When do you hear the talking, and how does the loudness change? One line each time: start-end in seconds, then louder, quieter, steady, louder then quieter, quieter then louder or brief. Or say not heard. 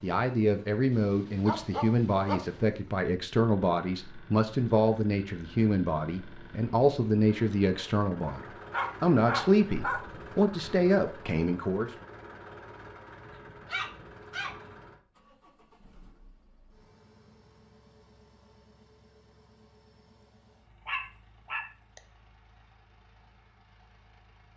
0.0-11.9 steady.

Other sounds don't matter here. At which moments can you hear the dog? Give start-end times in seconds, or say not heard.
0.9-2.5, 8.2-10.1, 13.7-14.6, 20.9-22.0.